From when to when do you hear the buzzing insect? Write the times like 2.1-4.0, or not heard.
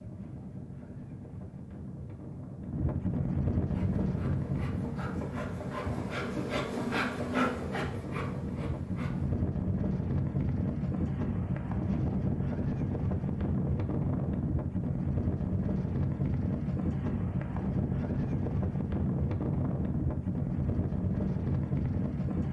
3.5-9.4.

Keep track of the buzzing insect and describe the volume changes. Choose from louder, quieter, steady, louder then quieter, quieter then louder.
louder then quieter.